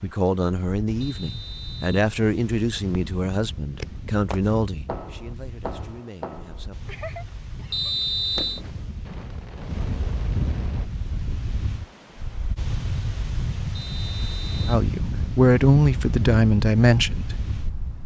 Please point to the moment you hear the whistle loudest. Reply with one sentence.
The loudest moment of the whistle is at 8 seconds.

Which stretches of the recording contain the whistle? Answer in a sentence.
The whistle can be heard from 1.0 to 1.9 s, from 7.7 to 8.6 s and from 13.8 to 14.7 s.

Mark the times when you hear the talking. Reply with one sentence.
You can hear the talking from 0.0 to 7.0 s and from 14.7 to 17.4 s.